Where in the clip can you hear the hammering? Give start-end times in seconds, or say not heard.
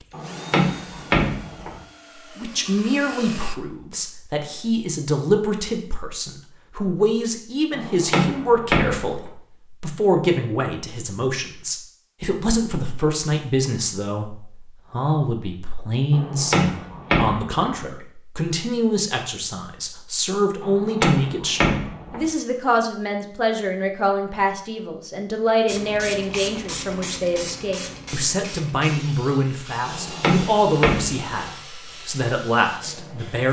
0.1-1.8, 7.7-9.1, 16.1-17.8, 20.6-22.2, 29.9-31.4.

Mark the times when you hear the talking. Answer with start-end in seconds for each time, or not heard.
2.4-33.4.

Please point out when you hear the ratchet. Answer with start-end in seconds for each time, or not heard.
not heard.